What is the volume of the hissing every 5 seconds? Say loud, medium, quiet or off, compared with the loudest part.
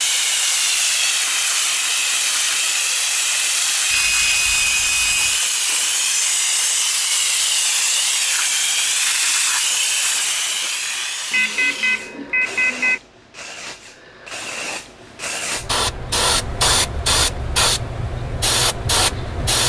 loud, loud, medium, loud.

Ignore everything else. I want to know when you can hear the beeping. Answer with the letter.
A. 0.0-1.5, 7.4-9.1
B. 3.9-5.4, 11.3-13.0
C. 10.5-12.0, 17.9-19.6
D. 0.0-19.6
B.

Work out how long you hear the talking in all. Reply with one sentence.
The talking can't be heard in this clip.